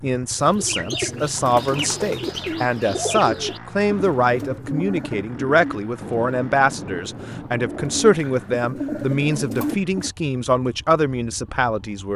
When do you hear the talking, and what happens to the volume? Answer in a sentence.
The talking can be heard from 0.0 to 12.1 s, at a steady volume.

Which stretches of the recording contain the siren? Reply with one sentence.
The siren can't be heard in this clip.